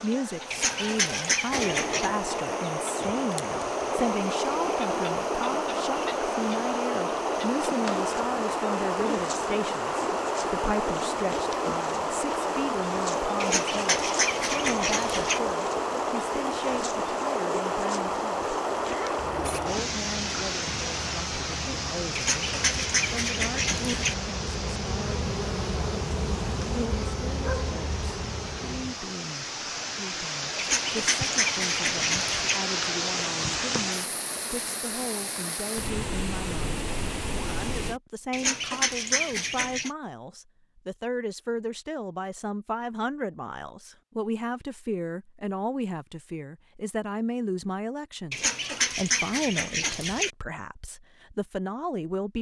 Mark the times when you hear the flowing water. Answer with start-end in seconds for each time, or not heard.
0.1-38.0.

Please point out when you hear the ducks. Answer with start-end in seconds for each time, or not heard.
0.5-2.1, 13.4-15.4, 22.1-24.1, 30.6-32.6, 38.3-39.9, 48.3-50.3.